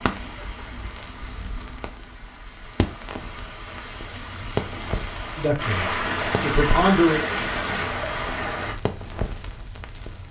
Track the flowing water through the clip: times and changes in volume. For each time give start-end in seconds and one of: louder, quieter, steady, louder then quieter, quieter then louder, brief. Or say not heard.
0.0-8.8 louder.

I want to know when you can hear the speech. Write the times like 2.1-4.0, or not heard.
5.3-7.2.